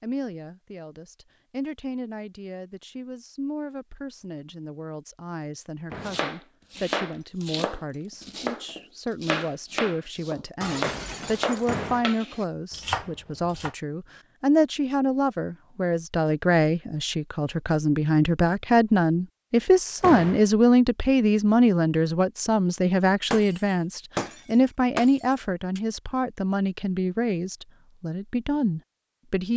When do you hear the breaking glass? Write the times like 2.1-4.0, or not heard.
10.6-11.9, 23.3-25.8.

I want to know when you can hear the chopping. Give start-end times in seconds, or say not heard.
6.0-13.8.